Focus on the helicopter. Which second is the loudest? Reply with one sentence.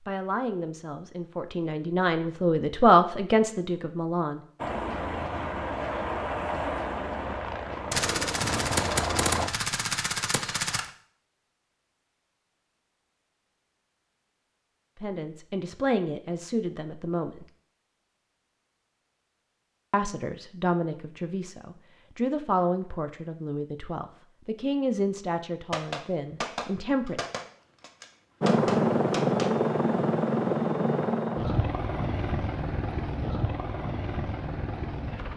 The volume of the helicopter peaks at 29 seconds.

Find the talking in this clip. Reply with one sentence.
You can hear the talking from 0.1 to 4.5 s, from 14.9 to 17.4 s and from 19.9 to 27.2 s.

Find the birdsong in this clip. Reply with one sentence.
The birdsong can't be heard in this clip.